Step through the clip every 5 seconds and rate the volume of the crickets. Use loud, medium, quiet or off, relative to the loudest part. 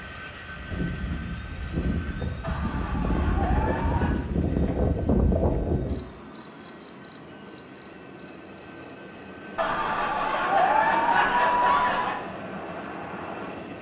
loud, loud, medium.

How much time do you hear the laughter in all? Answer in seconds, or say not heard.
4 s.